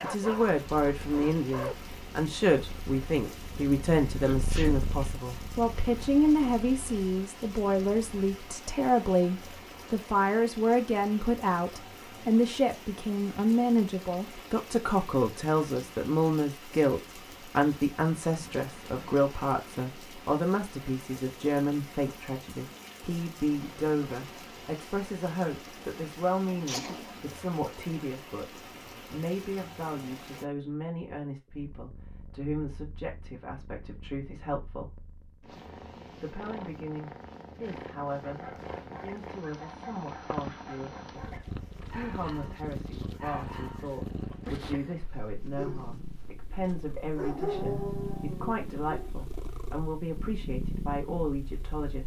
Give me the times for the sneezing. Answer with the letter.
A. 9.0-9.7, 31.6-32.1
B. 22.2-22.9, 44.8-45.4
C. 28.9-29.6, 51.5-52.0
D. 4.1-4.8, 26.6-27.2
D.